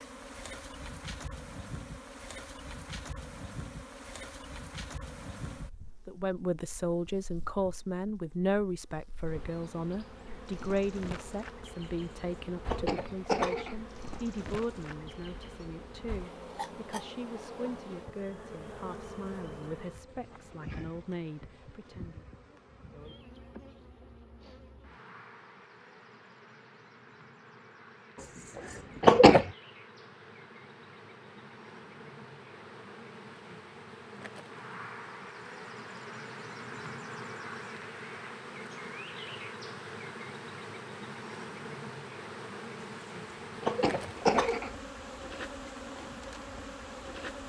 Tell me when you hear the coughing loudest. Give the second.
29 s.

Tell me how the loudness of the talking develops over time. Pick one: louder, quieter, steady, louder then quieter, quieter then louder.
quieter.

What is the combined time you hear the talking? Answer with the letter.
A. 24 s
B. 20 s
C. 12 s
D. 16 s
D.